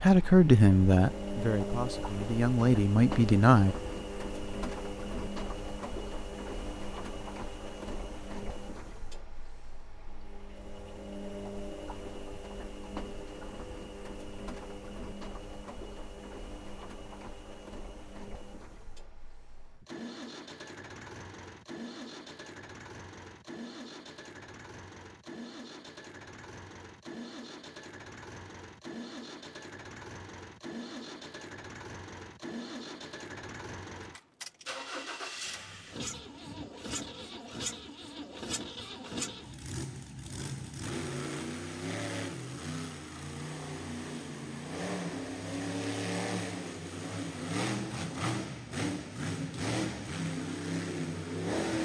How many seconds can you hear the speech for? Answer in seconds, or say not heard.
4 s.